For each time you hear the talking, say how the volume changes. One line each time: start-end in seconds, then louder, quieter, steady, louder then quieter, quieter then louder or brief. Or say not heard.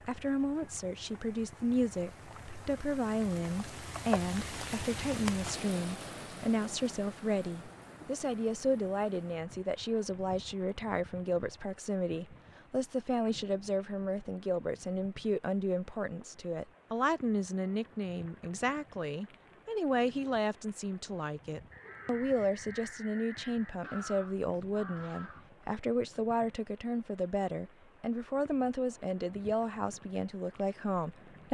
0.1-31.5 steady.